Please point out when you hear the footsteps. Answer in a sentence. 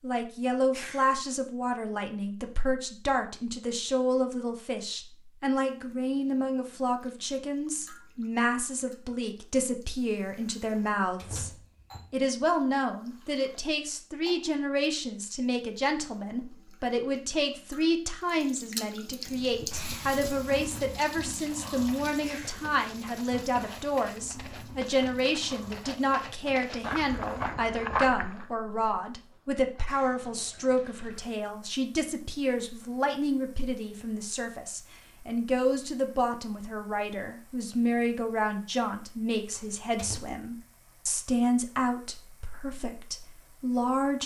You can hear the footsteps from 19.1 to 28.5 s.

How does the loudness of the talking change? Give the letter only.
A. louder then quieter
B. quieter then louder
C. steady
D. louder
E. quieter
C.